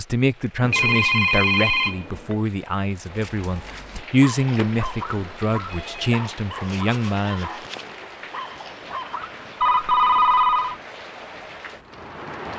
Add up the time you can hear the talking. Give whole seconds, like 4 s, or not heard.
8 s.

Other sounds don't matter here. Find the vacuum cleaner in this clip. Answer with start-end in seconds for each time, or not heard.
not heard.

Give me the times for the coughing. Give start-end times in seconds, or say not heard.
not heard.